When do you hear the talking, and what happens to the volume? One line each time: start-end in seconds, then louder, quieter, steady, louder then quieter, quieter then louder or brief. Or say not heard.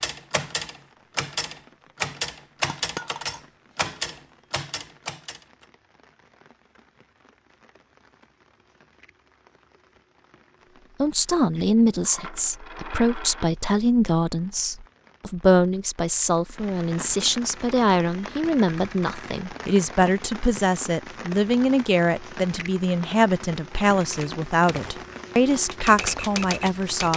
11.0-27.1 steady.